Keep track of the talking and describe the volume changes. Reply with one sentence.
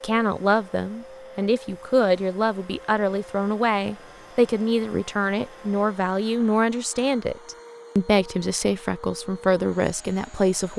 The loudness of the talking stays about the same.